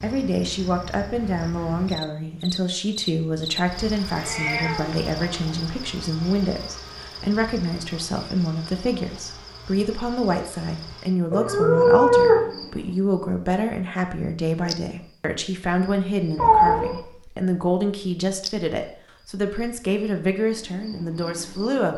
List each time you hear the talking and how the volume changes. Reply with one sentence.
The talking can be heard from 0.0 to 21.9 s, at a steady volume.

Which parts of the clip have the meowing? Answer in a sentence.
The meowing can be heard from 4.1 to 5.6 s, from 11.3 to 12.4 s and from 16.4 to 17.0 s.